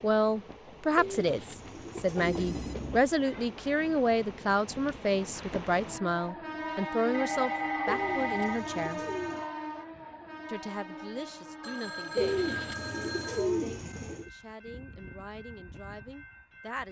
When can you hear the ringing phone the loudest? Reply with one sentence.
The volume of the ringing phone peaks at 8 seconds.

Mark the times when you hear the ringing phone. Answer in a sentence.
The ringing phone can be heard from 2.1 to 3.0 s, from 7.1 to 8.6 s and from 11.6 to 13.4 s.